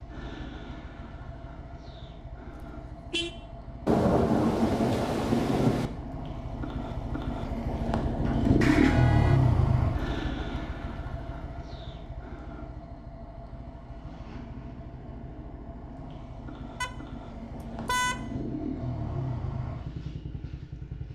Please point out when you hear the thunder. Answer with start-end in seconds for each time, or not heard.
3.9-5.9.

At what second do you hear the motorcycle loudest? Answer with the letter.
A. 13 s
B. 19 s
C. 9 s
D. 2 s
C.